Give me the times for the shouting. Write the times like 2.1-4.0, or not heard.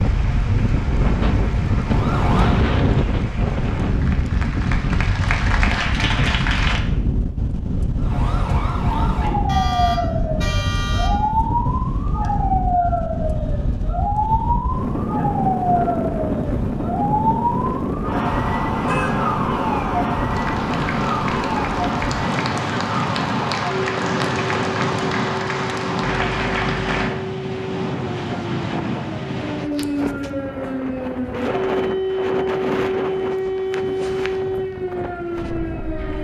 not heard.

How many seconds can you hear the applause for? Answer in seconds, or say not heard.
14 s.